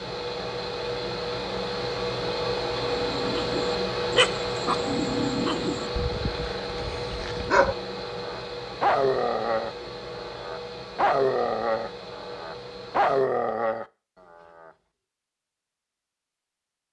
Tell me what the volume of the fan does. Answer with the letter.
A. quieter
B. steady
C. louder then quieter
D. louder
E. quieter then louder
A.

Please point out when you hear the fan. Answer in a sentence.
The fan can be heard from 0.0 to 13.2 s.